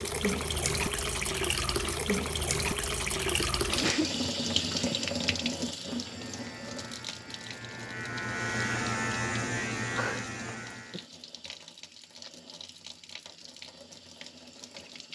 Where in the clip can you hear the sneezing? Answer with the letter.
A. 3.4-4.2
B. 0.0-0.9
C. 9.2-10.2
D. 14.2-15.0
A.